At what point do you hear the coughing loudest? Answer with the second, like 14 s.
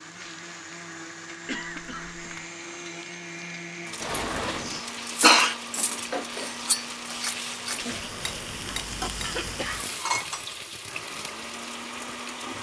5 s.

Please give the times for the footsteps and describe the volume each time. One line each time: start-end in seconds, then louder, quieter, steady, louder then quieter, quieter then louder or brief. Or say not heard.
not heard.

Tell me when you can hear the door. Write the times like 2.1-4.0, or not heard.
4.0-4.8.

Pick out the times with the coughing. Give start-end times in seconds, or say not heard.
1.4-2.2, 4.6-5.5, 9.2-9.9.